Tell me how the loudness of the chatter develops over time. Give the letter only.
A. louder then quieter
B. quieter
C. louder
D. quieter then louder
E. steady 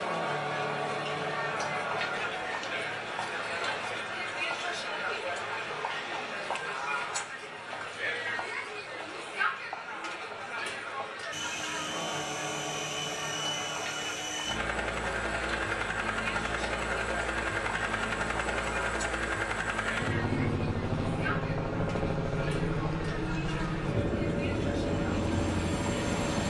B.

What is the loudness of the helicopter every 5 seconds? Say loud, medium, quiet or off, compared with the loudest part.
off, off, medium, loud, loud, loud.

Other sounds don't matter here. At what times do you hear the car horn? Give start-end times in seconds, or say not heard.
not heard.